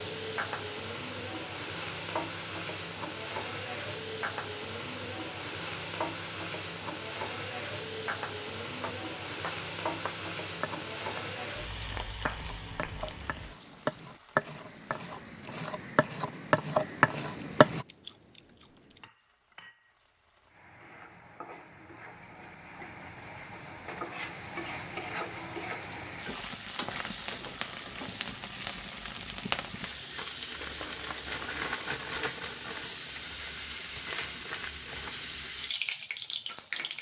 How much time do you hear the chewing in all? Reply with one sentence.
You can hear the chewing for 2 seconds altogether.